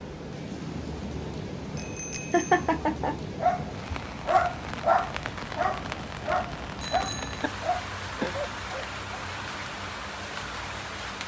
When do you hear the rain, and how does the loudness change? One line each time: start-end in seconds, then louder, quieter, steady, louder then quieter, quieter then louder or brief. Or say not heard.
0.0-11.2 steady.